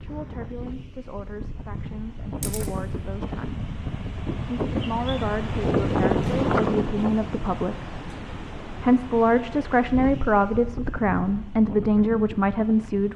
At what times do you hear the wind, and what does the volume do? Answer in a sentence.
The wind can be heard from 0.0 to 13.1 s, getting louder then quieter.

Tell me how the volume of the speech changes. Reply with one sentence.
The loudness of the speech goes up.